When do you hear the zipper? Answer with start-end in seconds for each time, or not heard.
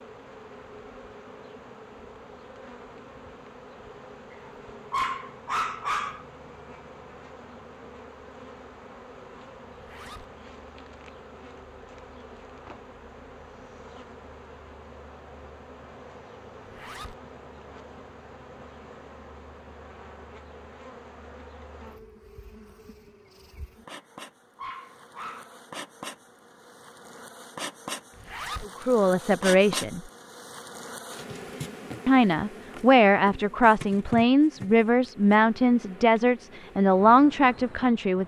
9.7-10.2, 16.6-17.1, 28.1-28.6.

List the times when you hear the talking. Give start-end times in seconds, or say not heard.
28.6-30.0, 32.0-38.2.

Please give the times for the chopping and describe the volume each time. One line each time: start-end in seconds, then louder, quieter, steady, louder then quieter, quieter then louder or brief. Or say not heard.
not heard.